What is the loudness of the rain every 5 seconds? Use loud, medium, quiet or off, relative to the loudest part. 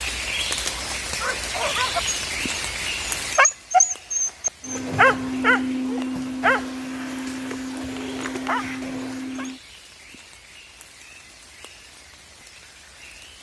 loud, quiet, quiet.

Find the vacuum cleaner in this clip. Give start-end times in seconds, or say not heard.
4.7-9.6.